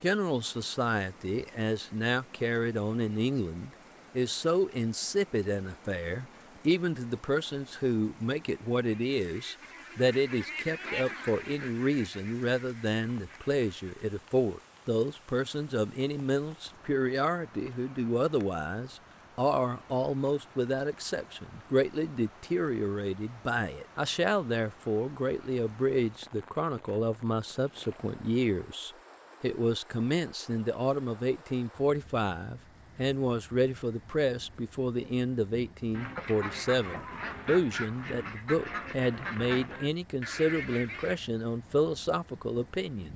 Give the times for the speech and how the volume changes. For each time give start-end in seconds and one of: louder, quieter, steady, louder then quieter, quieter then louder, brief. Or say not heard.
0.0-43.1 steady.